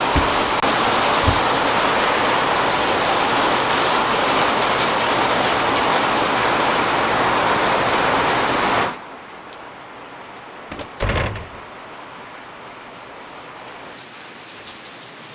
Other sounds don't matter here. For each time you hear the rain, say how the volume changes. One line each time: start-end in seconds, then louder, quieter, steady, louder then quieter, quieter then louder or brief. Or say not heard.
0.0-15.3 quieter.